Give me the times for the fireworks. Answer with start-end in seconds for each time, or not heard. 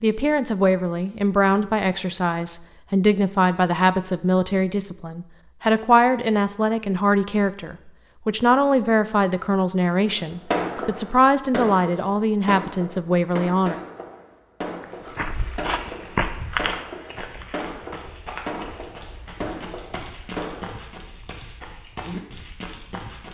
10.1-20.8.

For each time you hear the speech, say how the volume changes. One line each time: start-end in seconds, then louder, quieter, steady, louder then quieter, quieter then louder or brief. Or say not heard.
0.0-13.8 steady.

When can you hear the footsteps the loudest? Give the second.
16 s.